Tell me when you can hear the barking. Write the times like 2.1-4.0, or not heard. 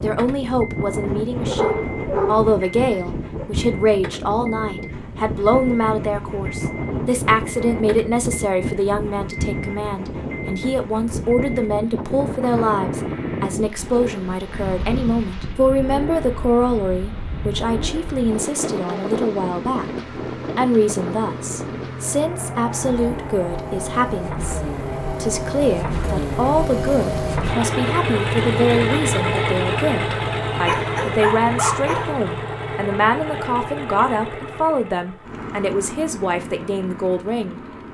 1.4-3.5, 30.6-32.2.